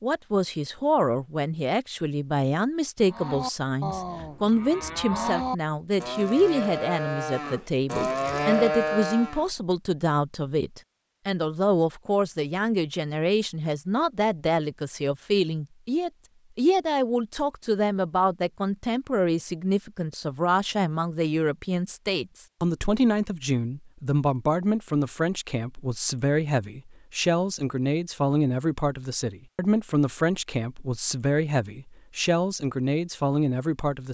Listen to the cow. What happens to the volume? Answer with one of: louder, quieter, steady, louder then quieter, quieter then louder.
louder.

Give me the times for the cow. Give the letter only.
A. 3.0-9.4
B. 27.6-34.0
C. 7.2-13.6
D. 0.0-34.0
A.